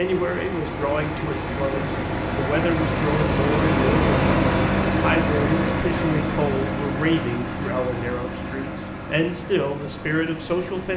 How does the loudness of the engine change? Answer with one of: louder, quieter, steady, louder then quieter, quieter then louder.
louder then quieter.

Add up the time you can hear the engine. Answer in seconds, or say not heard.
11 s.